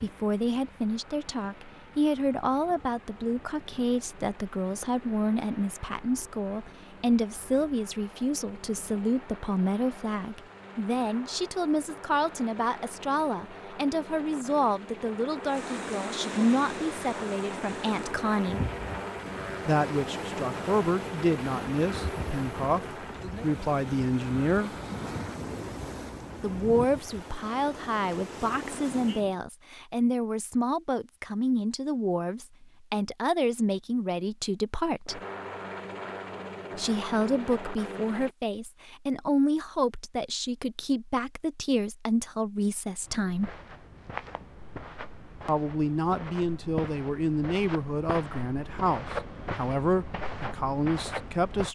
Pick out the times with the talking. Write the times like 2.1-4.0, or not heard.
0.0-18.6, 19.6-24.7, 26.4-35.2, 36.8-43.5, 45.5-51.7.